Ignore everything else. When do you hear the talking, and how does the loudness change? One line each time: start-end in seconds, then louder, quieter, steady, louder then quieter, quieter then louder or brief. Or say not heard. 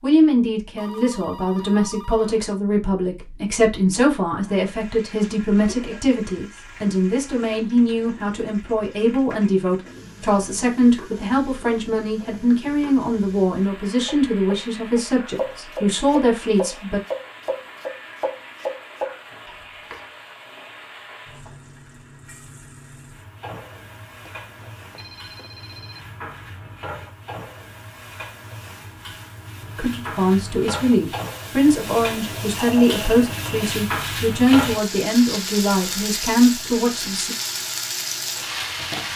0.0-17.0 steady
29.8-37.4 steady.